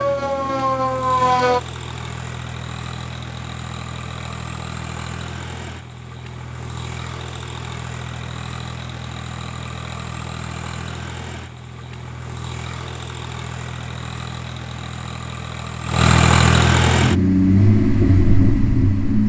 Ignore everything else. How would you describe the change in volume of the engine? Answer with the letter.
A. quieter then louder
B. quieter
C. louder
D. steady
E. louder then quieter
C.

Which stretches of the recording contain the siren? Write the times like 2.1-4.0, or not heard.
0.0-1.6.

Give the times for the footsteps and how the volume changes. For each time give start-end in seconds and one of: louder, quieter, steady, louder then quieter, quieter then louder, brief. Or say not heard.
not heard.